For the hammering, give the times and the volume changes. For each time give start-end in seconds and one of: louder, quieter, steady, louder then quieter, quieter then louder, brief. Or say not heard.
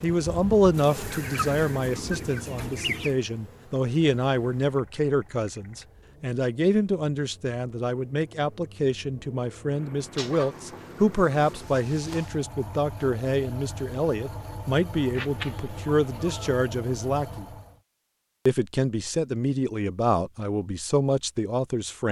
not heard.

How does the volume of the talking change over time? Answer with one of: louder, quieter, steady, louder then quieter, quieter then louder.
steady.